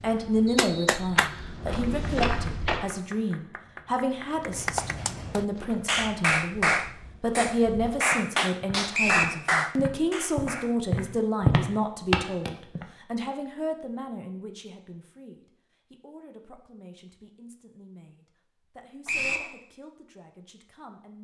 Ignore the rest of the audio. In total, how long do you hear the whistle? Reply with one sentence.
The whistle can be heard for 2 seconds in total.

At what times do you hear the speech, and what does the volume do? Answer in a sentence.
The speech can be heard from 0.0 to 21.1 s, getting quieter.